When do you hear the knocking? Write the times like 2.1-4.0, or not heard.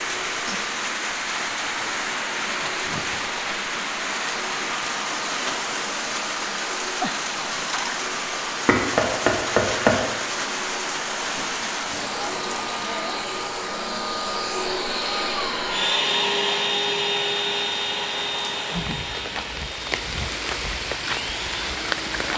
8.7-9.9.